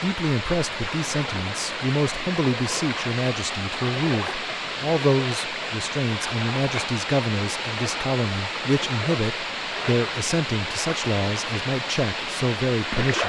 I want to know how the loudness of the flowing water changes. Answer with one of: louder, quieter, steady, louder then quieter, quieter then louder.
steady.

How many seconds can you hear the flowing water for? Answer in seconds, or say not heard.
13 s.